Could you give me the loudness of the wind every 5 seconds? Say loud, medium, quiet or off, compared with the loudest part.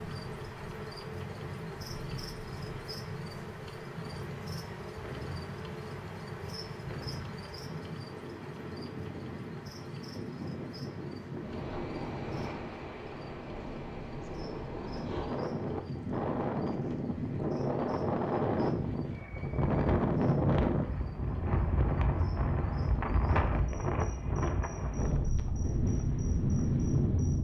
quiet, quiet, medium, loud, loud, loud.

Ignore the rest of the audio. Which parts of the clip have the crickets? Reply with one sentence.
The crickets can be heard from 0.0 to 27.3 s.